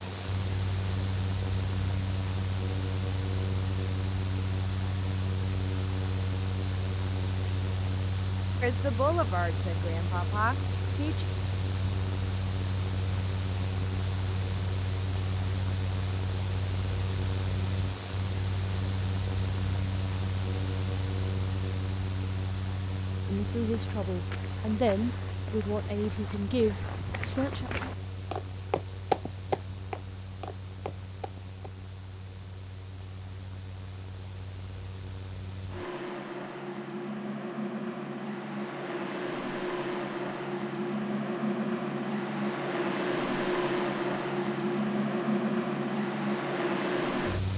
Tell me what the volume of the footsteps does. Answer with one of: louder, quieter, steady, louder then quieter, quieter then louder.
louder then quieter.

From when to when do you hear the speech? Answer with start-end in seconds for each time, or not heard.
8.6-11.2, 23.2-27.7.